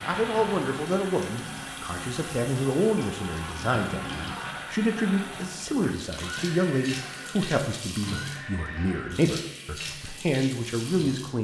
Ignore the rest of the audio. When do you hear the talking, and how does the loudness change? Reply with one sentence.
The talking can be heard from 0.0 to 11.3 s, at a steady volume.